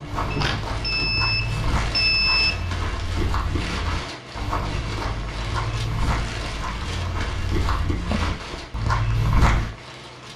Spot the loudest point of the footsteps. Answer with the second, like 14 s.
9 s.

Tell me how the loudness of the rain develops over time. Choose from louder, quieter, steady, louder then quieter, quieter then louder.
steady.